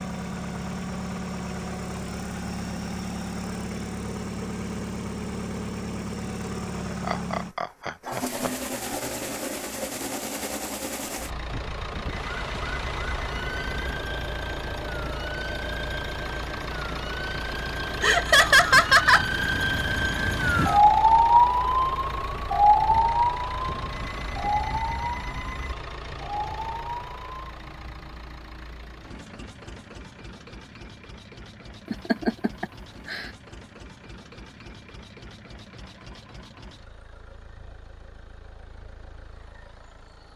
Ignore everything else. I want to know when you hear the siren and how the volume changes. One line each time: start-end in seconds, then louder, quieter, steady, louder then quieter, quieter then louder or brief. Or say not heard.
12.1-27.4 louder then quieter.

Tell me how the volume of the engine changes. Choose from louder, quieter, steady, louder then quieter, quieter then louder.
quieter.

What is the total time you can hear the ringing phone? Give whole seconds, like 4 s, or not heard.
4 s.